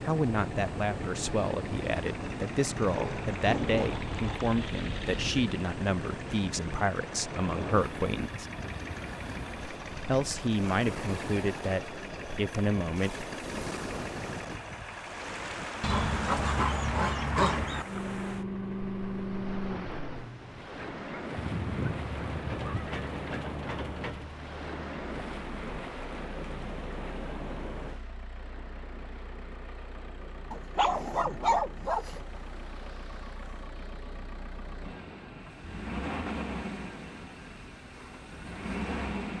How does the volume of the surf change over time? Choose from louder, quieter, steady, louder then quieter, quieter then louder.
quieter.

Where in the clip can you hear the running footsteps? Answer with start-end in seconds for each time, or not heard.
not heard.